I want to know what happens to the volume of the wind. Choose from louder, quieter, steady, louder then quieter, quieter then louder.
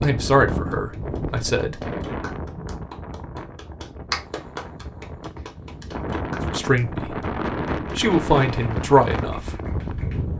quieter then louder.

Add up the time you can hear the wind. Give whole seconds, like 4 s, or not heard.
10 s.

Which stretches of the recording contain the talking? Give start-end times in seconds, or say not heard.
0.0-1.8, 6.5-9.6.